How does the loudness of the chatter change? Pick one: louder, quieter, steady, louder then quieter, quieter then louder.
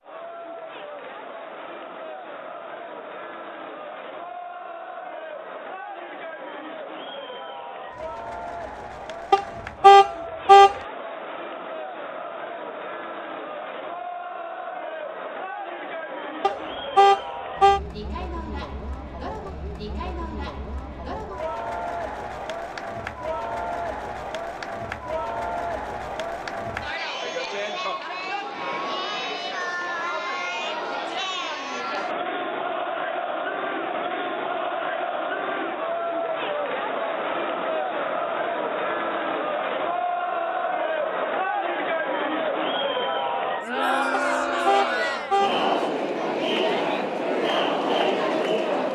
louder.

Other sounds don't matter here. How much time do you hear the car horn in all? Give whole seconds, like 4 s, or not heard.
4 s.